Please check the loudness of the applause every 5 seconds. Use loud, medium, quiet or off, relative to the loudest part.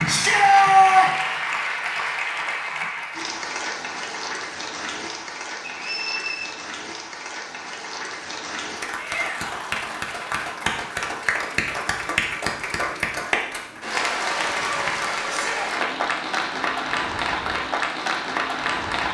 loud, medium, loud, loud.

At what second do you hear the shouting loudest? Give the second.
1 s.